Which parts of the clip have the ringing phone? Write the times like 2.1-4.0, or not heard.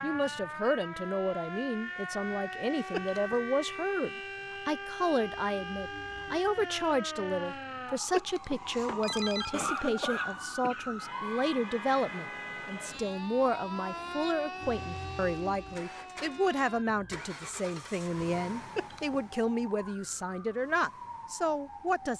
2.9-3.4, 8.1-9.8, 18.8-19.2.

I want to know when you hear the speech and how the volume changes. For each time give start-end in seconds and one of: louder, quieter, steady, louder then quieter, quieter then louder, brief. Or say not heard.
0.0-22.1 steady.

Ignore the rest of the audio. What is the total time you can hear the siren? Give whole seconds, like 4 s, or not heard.
22 s.